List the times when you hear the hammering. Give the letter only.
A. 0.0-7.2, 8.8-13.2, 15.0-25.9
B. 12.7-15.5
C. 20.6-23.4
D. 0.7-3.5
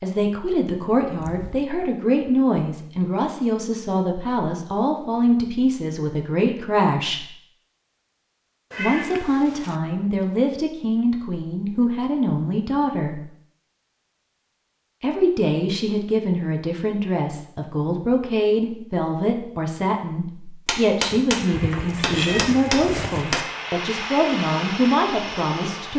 C.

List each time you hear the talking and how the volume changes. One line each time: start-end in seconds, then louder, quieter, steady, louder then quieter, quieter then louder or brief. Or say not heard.
0.0-7.2 steady
8.8-13.2 steady
15.0-25.9 steady.